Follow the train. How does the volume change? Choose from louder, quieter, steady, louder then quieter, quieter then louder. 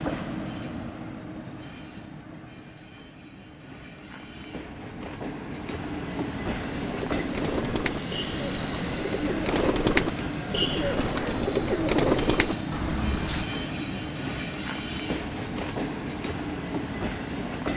louder.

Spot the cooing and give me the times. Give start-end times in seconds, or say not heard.
6.7-13.5.